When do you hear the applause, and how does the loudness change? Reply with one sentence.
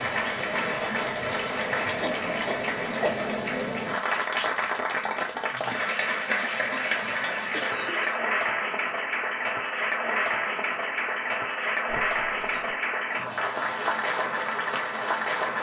The applause can be heard from 0.0 to 15.5 s, at a steady volume.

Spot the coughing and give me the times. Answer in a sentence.
The coughing can be heard from 2.0 to 3.2 s, from 6.8 to 8.2 s and from 11.8 to 12.8 s.